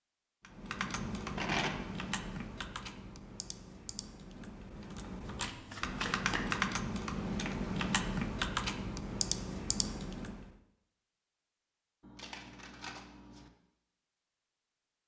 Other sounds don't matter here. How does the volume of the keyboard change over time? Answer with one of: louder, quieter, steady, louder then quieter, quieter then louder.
quieter then louder.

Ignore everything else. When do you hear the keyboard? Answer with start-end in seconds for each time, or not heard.
0.6-10.4.